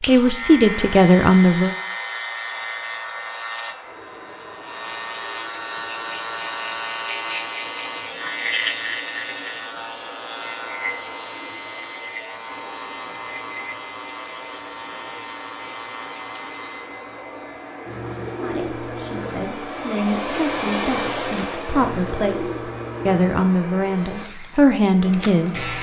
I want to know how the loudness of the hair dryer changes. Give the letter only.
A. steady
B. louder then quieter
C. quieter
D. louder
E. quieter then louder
D.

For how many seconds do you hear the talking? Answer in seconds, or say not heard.
9 s.